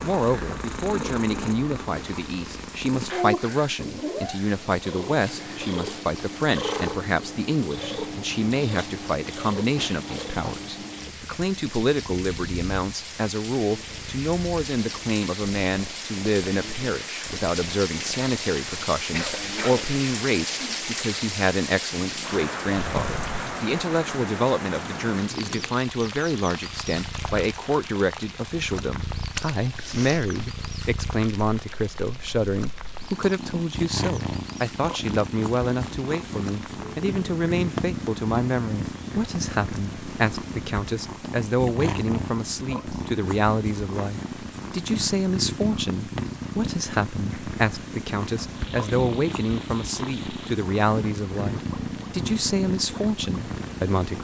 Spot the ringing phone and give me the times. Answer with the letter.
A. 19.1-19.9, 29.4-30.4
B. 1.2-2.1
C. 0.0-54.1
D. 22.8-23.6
D.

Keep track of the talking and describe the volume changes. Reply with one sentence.
The volume of the talking stays about the same.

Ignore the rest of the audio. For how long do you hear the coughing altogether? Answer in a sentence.
The coughing can be heard for 2 seconds in total.